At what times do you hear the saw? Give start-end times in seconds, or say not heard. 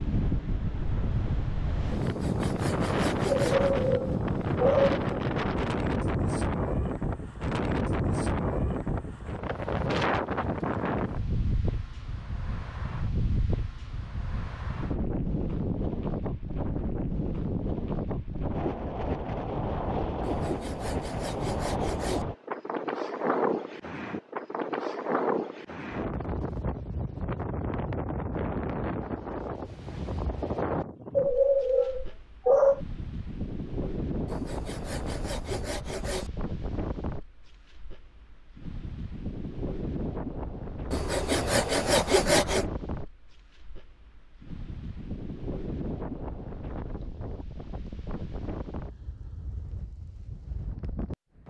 2.0-3.8, 20.2-22.2, 34.2-36.3, 40.9-42.6.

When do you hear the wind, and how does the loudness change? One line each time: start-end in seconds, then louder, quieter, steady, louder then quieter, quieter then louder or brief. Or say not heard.
0.0-51.4 quieter.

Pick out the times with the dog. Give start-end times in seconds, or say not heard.
3.4-5.0, 31.1-32.8.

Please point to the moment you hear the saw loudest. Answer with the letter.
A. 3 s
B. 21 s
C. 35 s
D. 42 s
D.